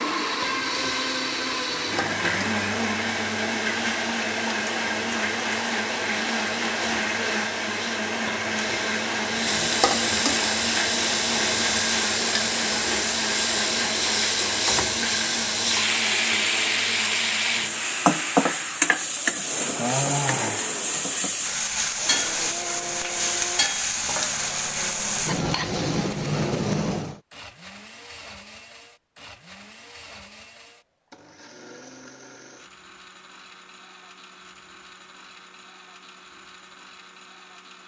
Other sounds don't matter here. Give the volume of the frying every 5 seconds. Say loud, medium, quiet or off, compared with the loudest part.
quiet, medium, loud, loud, loud, loud, off, off.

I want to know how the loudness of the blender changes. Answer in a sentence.
The loudness of the blender goes down.